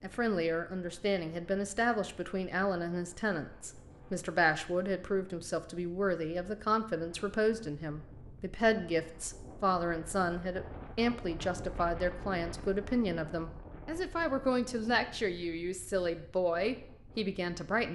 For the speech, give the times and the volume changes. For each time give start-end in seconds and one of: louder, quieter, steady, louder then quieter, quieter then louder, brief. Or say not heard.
0.0-17.9 steady.